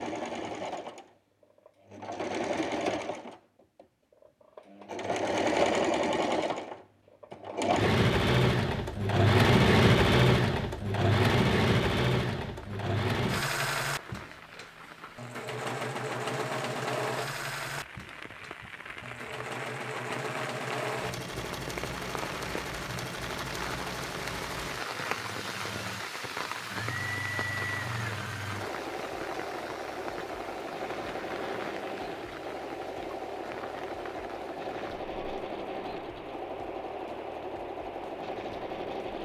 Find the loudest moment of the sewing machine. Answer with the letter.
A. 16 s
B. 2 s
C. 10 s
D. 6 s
C.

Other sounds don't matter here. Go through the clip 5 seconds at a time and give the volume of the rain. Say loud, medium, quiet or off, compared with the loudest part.
off, off, medium, medium, loud, loud, medium, medium.